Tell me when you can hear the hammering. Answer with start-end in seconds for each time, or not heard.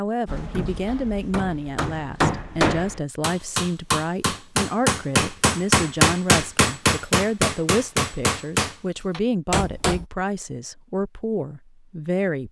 0.2-10.1.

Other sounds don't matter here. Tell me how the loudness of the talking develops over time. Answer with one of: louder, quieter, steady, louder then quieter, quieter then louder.
steady.